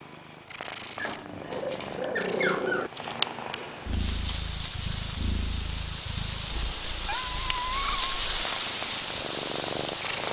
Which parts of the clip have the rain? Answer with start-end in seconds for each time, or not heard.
3.8-10.2.